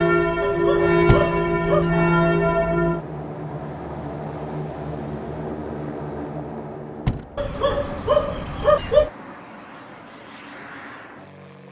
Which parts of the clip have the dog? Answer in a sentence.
The dog can be heard from 0.4 to 1.9 s and from 7.3 to 9.1 s.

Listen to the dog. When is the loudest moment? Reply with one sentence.
The loudest moment of the dog is at 9 seconds.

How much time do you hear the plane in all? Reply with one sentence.
You can hear the plane for 11 seconds altogether.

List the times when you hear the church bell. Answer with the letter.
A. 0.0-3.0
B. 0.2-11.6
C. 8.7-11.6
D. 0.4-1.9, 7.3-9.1
A.